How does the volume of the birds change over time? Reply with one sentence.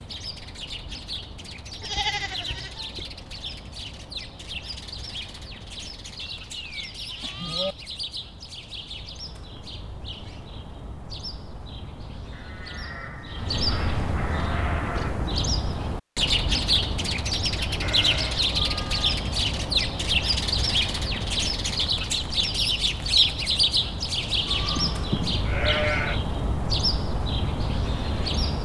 The loudness of the birds goes up.